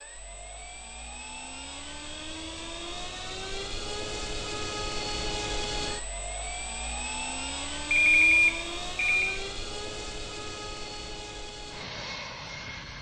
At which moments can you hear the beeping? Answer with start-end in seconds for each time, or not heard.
7.9-9.4.